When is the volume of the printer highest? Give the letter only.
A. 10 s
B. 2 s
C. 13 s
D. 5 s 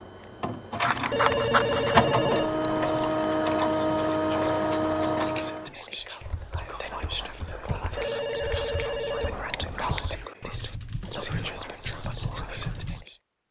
B.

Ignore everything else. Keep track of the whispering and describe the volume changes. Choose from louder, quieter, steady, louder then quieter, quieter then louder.
louder.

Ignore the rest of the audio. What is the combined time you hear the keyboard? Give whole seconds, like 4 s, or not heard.
7 s.